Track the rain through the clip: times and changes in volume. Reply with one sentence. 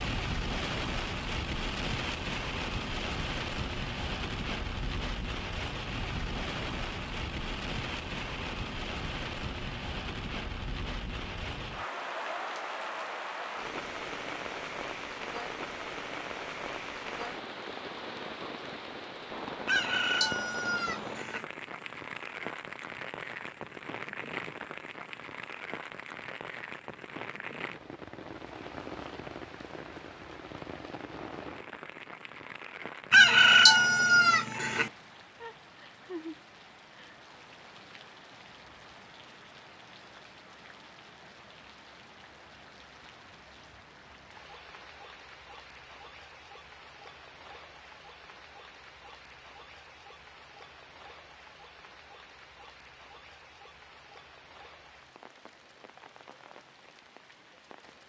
The rain can be heard from 0.0 to 58.0 s, getting quieter.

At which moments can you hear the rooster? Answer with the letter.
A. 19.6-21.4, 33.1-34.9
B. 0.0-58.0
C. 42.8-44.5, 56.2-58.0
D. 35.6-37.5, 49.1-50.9
A.